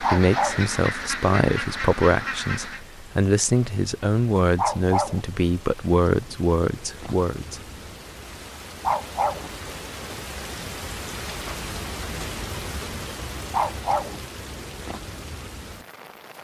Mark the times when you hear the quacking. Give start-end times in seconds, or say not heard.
0.0-2.9.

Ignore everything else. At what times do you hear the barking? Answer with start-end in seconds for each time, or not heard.
0.0-0.7, 4.5-5.2, 8.8-9.5, 13.5-14.2.